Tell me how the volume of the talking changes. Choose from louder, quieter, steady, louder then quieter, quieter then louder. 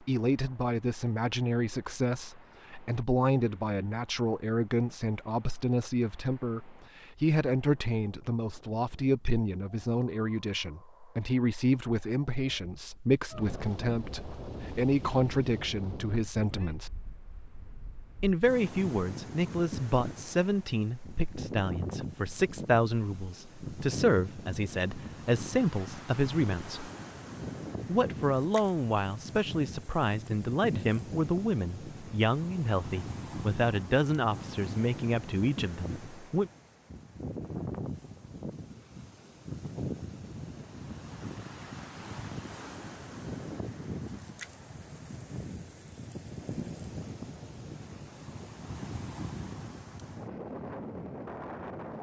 steady.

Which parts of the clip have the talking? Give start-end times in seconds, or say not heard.
0.1-16.9, 18.2-26.9, 27.9-36.5.